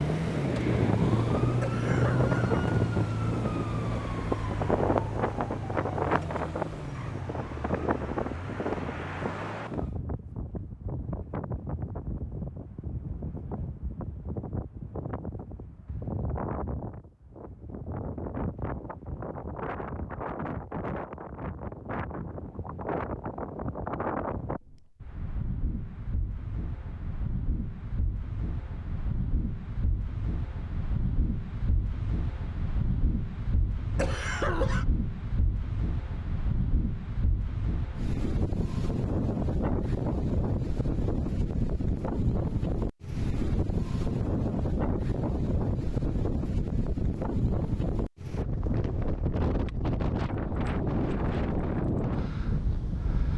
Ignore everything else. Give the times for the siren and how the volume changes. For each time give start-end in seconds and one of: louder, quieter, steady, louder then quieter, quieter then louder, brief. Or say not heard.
0.0-10.0 quieter.